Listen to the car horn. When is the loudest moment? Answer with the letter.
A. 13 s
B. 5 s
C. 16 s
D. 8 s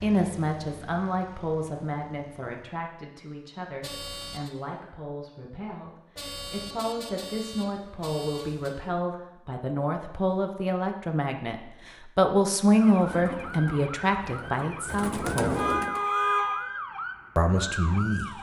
C.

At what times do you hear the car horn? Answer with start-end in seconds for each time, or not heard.
3.8-4.5, 6.2-8.8, 15.5-16.6.